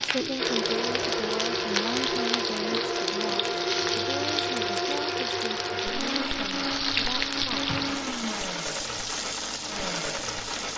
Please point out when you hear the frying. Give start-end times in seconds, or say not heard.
0.0-10.7.